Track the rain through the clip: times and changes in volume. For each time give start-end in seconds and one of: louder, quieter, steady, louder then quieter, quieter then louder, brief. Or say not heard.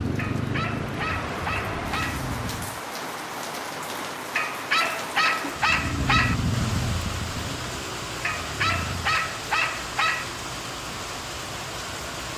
0.0-12.3 steady.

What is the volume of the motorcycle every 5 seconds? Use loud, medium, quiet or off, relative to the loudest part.
loud, loud, off.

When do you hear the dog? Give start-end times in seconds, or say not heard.
0.1-2.2, 4.3-6.3, 8.2-10.2.